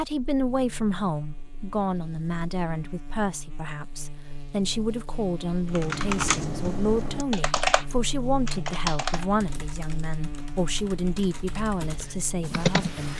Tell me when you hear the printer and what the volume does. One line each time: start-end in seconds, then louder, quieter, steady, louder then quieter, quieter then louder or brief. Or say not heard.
not heard.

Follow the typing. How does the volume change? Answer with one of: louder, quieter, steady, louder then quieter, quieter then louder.
quieter then louder.